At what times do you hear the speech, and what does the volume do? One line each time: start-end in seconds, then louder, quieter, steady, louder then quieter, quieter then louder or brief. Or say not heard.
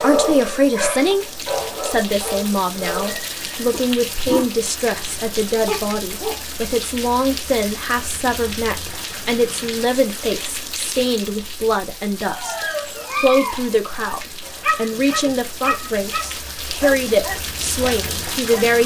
0.0-18.8 steady.